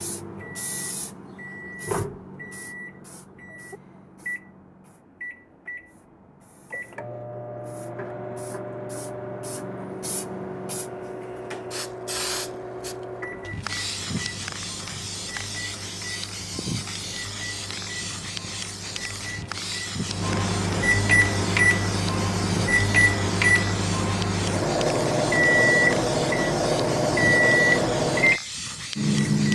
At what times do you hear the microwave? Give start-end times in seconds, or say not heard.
0.0-29.4.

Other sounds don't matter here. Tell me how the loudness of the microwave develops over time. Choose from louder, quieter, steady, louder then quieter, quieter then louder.
louder.